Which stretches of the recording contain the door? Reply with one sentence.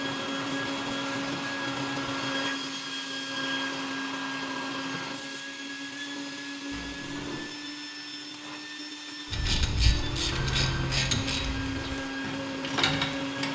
The door can be heard from 6.7 to 7.5 s.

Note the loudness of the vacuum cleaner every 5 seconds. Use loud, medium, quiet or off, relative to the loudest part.
loud, medium, loud.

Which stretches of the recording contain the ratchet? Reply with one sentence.
The ratchet can be heard from 9.3 to 13.5 s.